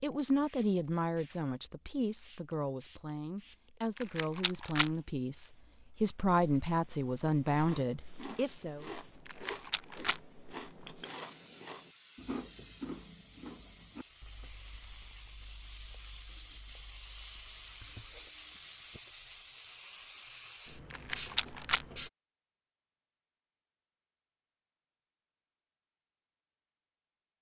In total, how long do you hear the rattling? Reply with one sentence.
The rattling can be heard for 3 seconds in total.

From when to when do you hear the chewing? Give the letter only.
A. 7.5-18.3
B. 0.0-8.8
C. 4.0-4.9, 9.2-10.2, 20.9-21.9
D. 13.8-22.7
A.